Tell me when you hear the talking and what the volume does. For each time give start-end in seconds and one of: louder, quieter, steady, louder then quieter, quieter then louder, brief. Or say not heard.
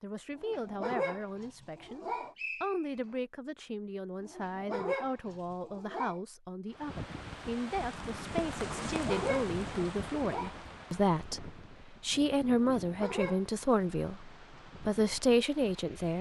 0.0-16.1 louder.